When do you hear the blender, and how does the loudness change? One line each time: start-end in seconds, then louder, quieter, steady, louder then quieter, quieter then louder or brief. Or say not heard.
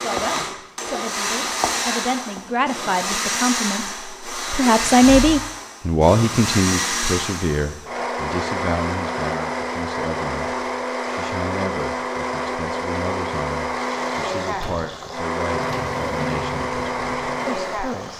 0.0-18.1 steady.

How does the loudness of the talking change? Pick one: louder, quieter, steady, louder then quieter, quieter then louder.
louder then quieter.